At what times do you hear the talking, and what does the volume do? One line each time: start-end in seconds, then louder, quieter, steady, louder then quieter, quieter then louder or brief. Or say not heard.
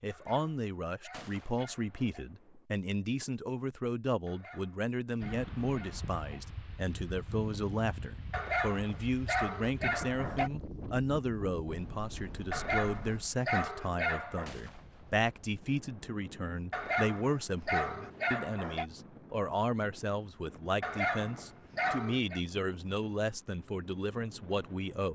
0.0-25.0 steady.